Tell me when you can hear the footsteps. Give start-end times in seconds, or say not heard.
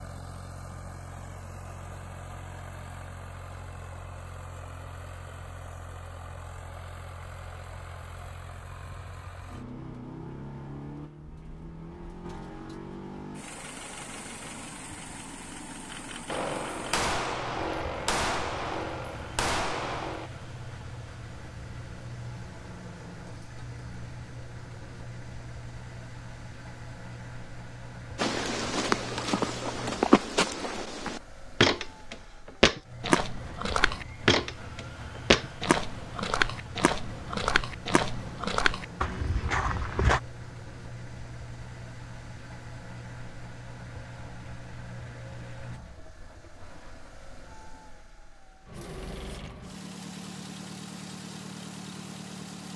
28.1-40.2.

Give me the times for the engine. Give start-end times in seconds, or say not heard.
0.0-52.7.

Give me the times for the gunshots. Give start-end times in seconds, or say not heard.
16.2-20.3.